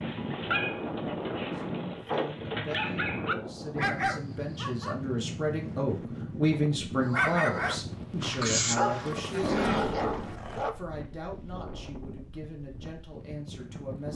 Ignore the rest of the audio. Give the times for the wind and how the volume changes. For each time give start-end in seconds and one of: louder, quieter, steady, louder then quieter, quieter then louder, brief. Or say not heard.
0.0-14.1 quieter.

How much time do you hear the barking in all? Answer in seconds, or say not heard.
9 s.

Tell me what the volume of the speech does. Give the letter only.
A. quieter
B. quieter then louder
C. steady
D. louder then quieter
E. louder
D.